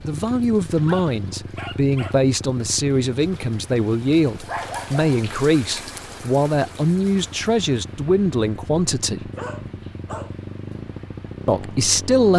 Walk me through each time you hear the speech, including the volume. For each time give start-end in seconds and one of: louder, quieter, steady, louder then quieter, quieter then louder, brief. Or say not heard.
0.1-9.3 steady
11.4-12.3 brief.